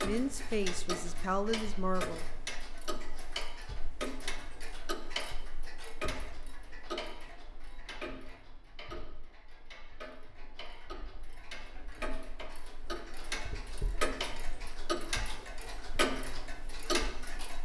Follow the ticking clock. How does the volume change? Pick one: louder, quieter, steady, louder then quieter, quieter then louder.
quieter then louder.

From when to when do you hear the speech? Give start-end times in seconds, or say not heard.
0.0-2.2.